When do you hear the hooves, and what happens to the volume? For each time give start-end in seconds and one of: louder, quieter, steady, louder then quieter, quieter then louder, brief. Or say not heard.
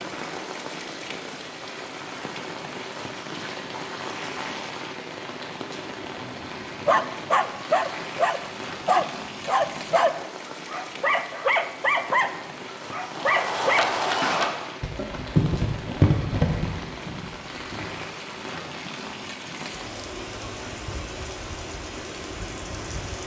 13.1-18.8 quieter.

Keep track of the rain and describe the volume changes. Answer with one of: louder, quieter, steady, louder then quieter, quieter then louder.
steady.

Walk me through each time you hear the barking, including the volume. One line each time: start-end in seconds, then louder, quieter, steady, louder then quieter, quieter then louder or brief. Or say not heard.
6.2-13.9 steady.